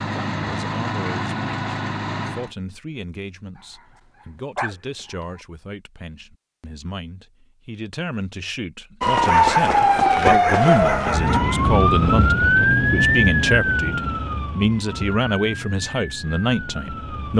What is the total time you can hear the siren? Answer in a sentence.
You can hear the siren for 8 seconds altogether.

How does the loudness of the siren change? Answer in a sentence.
The volume of the siren goes down.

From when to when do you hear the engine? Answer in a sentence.
The engine can be heard from 0.0 to 2.5 s.